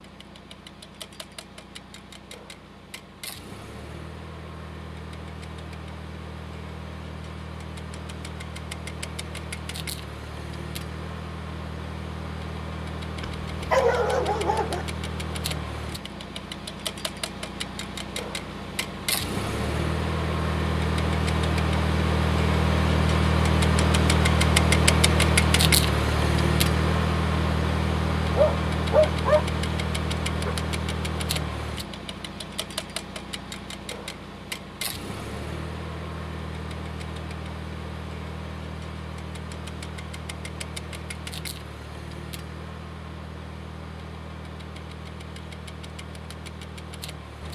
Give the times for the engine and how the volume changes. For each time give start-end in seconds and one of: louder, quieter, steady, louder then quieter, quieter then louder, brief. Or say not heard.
0.0-47.4 louder then quieter.